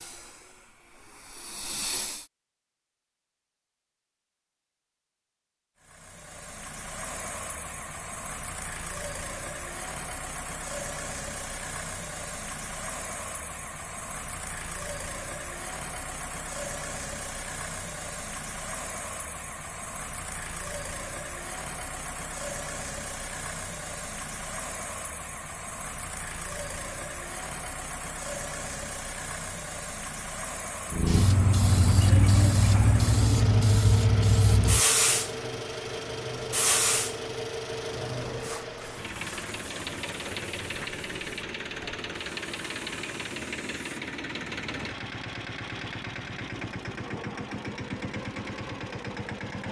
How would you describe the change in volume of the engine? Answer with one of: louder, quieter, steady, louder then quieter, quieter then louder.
steady.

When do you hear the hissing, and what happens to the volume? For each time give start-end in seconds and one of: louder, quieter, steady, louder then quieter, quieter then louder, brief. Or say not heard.
0.0-2.2 brief
30.9-44.0 quieter.